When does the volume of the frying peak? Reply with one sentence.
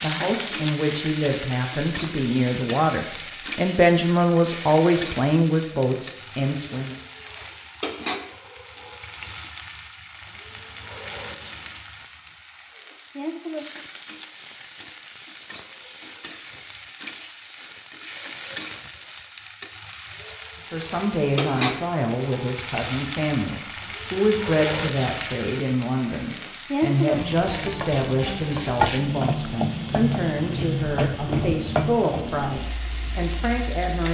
The loudest moment of the frying is at 29 seconds.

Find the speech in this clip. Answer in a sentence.
The speech can be heard from 0.0 to 7.0 s and from 20.7 to 34.0 s.